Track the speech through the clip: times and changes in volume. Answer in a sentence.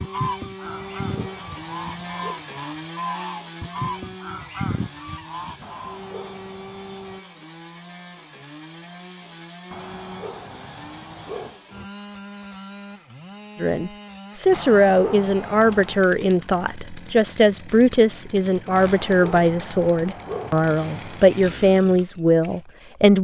The speech can be heard from 13.6 to 23.1 s, at a steady volume.